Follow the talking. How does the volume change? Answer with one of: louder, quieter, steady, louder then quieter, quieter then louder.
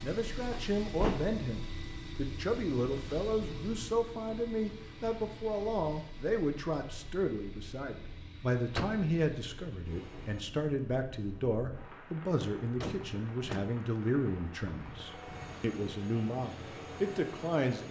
steady.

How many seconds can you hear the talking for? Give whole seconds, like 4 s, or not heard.
18 s.